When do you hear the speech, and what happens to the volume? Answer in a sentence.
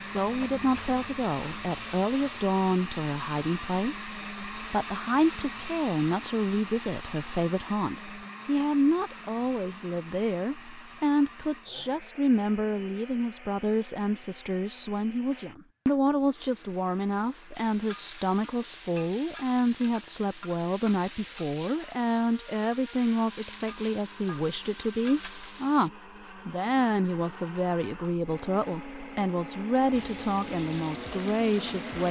The speech can be heard from 0.0 to 32.0 s, at a steady volume.